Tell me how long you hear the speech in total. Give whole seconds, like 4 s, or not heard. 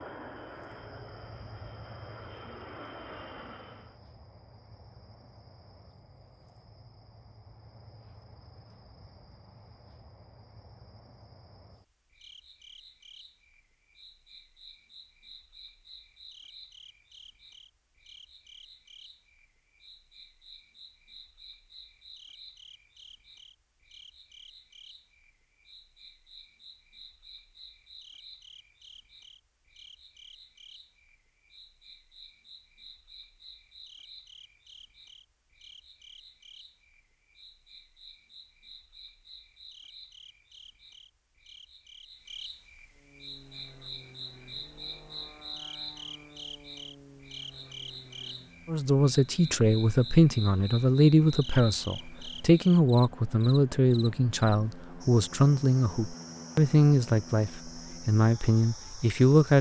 11 s.